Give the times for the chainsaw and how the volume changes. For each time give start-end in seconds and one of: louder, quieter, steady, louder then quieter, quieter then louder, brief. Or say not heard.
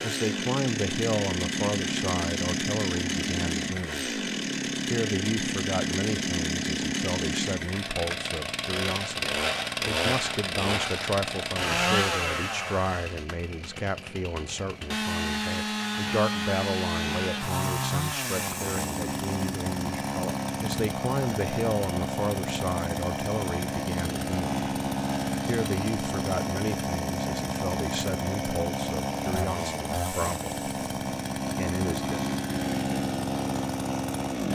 0.0-34.5 steady.